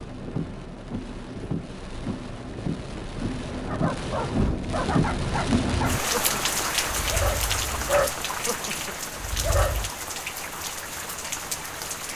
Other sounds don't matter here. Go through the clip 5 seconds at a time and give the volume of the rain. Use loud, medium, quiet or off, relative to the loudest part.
loud, loud, medium.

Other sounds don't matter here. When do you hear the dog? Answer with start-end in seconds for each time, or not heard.
3.6-9.9.